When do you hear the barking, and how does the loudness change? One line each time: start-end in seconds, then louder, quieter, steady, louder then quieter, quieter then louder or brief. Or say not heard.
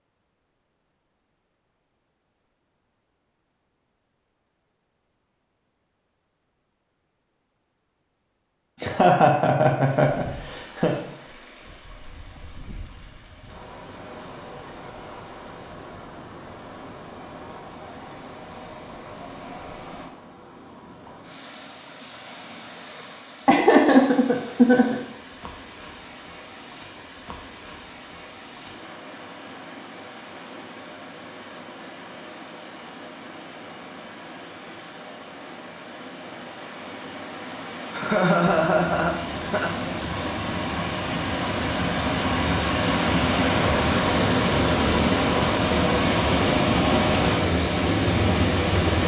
not heard.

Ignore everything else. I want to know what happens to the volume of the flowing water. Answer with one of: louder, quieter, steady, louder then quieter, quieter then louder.
louder.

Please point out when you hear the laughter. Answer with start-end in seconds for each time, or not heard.
8.8-10.9, 23.4-24.9, 37.9-39.7.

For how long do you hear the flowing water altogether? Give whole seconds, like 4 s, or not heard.
39 s.